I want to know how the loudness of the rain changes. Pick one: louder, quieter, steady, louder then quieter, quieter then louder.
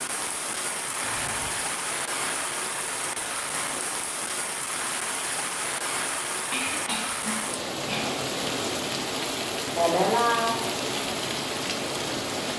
steady.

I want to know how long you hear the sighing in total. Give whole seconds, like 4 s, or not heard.
2 s.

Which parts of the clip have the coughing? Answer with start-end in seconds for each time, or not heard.
6.5-8.2.